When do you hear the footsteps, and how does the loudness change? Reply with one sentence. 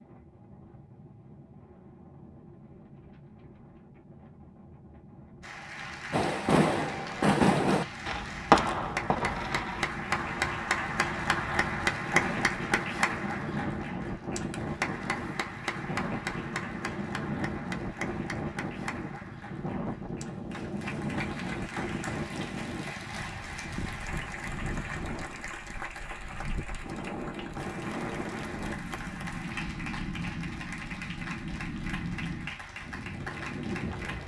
The footsteps can't be heard in this clip.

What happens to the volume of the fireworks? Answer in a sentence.
The volume of the fireworks goes down.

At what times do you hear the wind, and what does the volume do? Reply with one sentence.
You can hear the wind from 0.0 to 34.2 s, getting louder.